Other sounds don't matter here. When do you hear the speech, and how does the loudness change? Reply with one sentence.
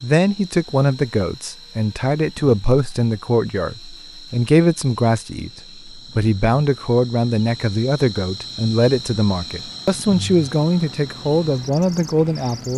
The speech can be heard from 0.0 to 12.7 s, at a steady volume.